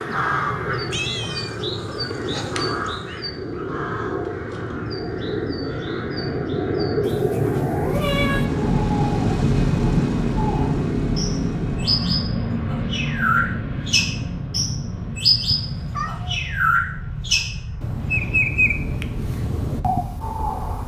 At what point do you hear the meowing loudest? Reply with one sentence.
The volume of the meowing peaks at 8 seconds.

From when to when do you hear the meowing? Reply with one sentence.
The meowing can be heard from 0.9 to 3.2 s, from 7.0 to 8.5 s and from 15.5 to 16.4 s.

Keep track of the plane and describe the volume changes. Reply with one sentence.
The volume of the plane goes up, then down.